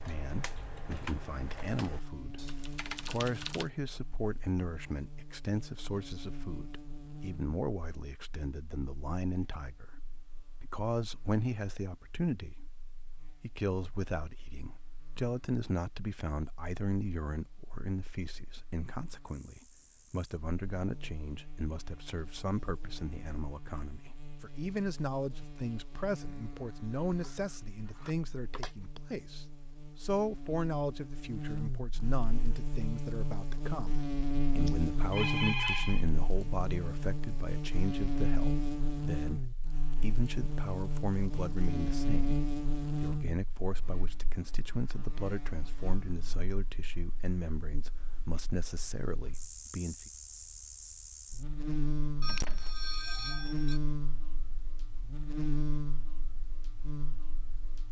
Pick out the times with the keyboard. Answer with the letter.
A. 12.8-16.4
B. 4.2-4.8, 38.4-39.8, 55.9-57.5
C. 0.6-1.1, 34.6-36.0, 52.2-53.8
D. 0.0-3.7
D.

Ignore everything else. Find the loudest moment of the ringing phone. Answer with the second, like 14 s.
36 s.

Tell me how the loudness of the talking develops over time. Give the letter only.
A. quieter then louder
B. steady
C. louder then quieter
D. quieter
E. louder
B.